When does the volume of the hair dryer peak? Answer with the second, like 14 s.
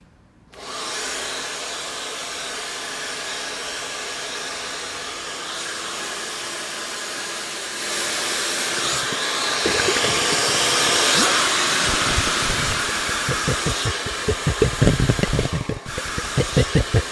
11 s.